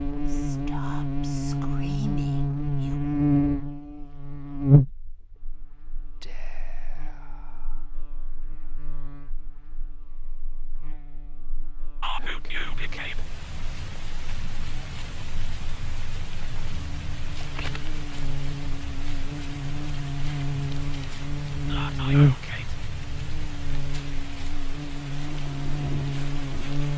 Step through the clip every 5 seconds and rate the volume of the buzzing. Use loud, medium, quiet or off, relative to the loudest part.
loud, quiet, quiet, quiet, loud, medium.